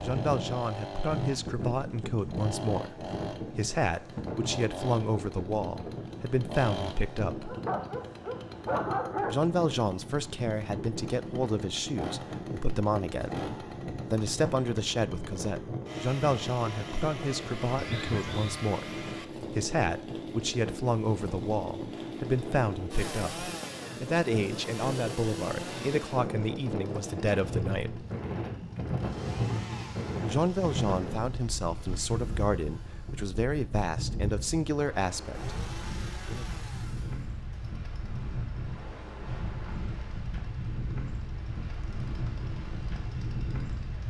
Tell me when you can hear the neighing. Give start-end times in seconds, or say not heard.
17.8-18.7.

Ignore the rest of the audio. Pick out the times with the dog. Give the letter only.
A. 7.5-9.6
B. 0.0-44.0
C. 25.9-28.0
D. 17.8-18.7
A.